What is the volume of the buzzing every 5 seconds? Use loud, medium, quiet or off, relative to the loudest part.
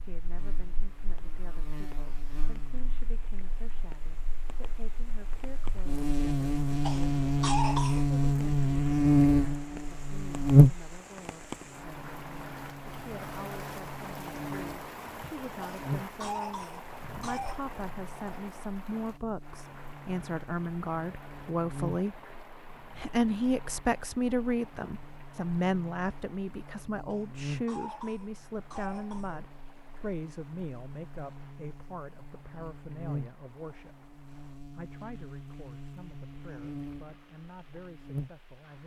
quiet, loud, loud, quiet, quiet, quiet, quiet, quiet.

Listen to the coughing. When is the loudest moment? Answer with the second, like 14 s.
8 s.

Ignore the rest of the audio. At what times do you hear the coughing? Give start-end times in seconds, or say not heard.
6.8-8.1, 15.6-17.6, 27.1-29.4.